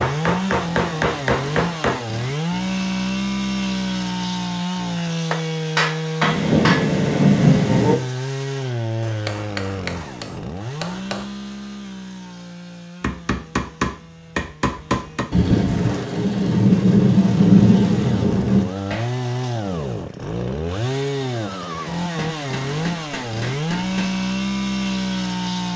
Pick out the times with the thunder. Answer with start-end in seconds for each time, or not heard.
6.2-8.0, 15.3-18.7.